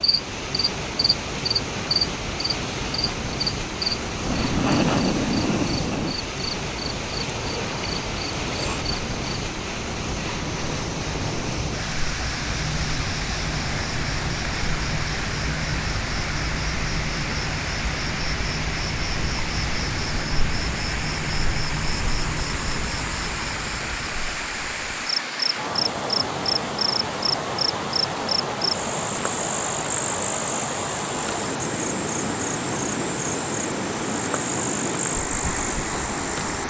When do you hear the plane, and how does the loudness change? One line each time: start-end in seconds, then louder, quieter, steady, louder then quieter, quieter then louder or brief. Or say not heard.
not heard.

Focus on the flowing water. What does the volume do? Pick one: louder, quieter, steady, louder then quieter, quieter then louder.
steady.